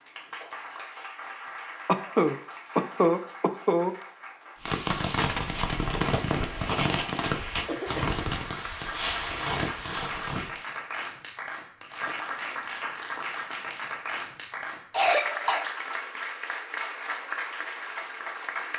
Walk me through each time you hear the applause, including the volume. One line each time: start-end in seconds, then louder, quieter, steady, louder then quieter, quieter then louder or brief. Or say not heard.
0.0-18.7 louder.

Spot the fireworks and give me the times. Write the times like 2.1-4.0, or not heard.
4.6-10.6.